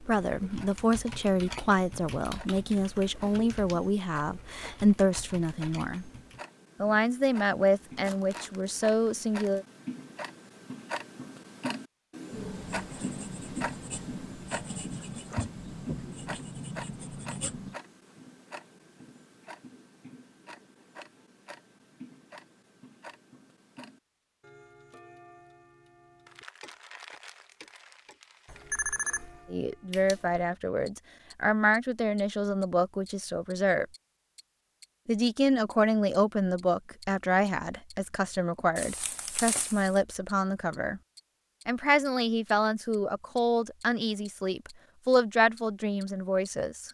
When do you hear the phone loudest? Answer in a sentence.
The volume of the phone peaks at 29 seconds.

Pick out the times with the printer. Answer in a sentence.
The printer can't be heard in this clip.